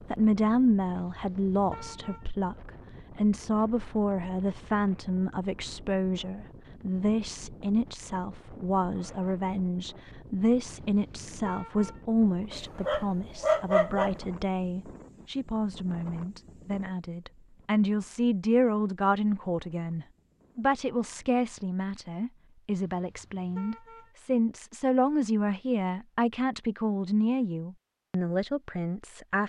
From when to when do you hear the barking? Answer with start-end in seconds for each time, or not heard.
12.5-14.1.